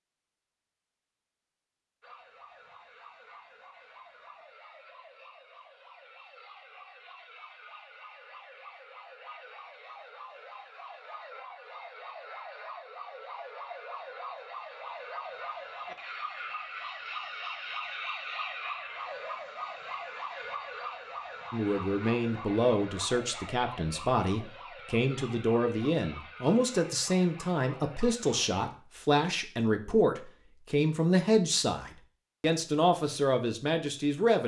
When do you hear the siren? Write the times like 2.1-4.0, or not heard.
2.0-28.6.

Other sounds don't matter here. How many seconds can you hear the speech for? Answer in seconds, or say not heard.
13 s.